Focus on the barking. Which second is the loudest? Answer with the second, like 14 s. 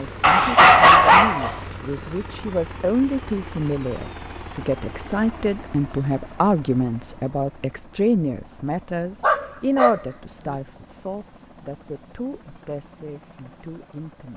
1 s.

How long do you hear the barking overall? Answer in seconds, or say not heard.
3 s.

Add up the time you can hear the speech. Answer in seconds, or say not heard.
14 s.